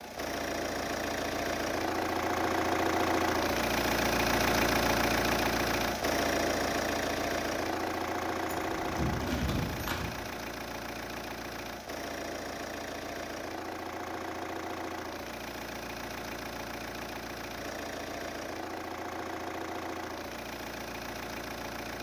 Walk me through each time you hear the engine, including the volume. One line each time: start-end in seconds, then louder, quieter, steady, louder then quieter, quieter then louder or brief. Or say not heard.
0.0-21.9 quieter.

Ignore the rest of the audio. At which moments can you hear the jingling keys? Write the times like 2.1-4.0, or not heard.
8.4-10.1.